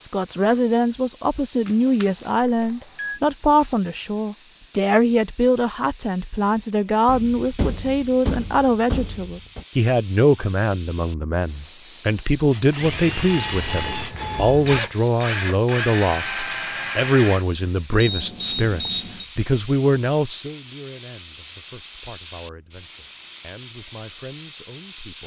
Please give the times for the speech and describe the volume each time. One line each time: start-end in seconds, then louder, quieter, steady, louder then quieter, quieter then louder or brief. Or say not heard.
0.0-25.2 quieter.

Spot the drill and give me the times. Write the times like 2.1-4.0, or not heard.
12.5-17.4.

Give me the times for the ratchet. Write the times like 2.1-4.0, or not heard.
not heard.